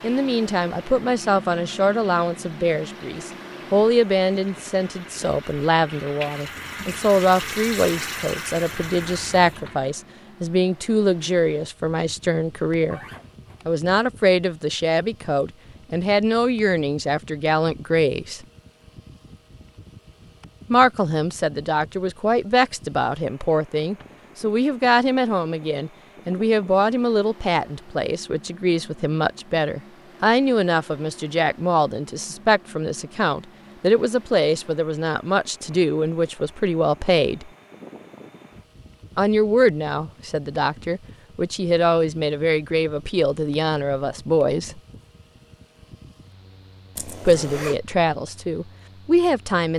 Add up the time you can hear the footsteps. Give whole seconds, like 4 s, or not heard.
not heard.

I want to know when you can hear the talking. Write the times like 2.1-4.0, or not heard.
0.0-13.0, 13.7-18.4, 20.7-37.5, 39.1-44.8, 47.2-49.7.